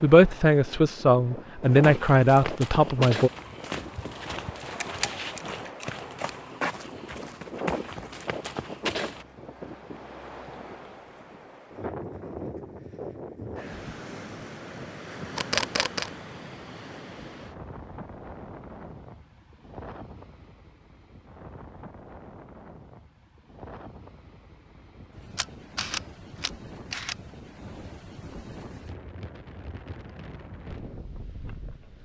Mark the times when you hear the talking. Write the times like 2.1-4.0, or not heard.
0.0-3.3.